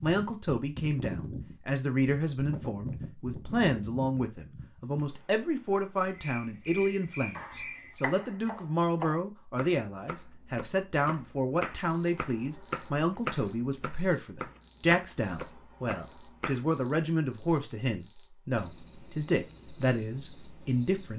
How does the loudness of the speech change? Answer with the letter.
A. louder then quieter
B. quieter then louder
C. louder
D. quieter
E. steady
E.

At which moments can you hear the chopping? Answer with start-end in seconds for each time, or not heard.
7.3-16.6.